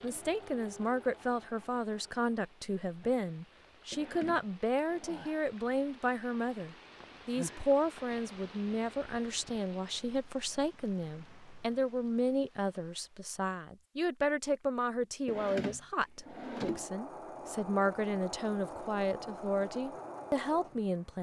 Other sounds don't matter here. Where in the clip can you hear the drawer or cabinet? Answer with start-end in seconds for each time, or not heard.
3.9-5.2, 15.2-16.9.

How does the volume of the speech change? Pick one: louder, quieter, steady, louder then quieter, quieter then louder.
steady.